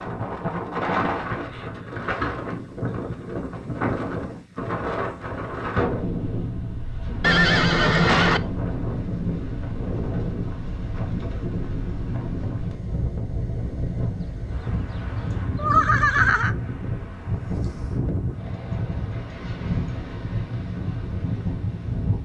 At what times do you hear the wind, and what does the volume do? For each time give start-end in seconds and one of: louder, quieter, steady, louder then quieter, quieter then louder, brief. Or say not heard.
0.0-22.2 steady.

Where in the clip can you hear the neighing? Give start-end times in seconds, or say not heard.
7.2-8.4, 14.0-16.6.